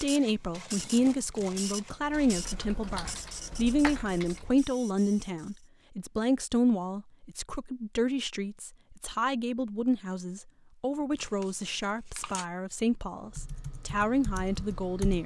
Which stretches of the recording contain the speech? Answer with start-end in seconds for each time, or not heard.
0.0-15.2.